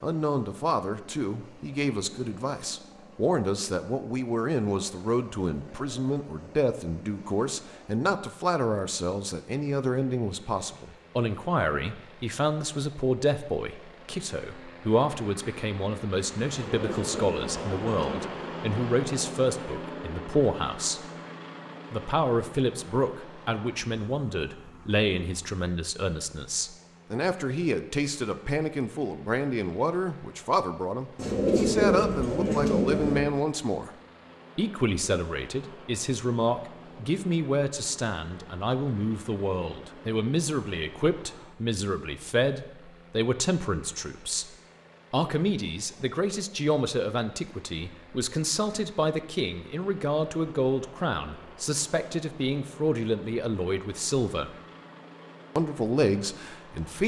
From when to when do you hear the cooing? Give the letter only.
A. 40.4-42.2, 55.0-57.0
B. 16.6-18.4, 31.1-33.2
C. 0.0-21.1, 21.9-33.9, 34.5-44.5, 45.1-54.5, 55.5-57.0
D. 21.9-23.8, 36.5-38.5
B.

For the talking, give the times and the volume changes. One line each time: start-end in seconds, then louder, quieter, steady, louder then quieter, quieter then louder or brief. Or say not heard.
0.0-21.1 steady
21.9-33.9 steady
34.5-44.5 steady
45.1-54.5 steady
55.5-57.0 brief.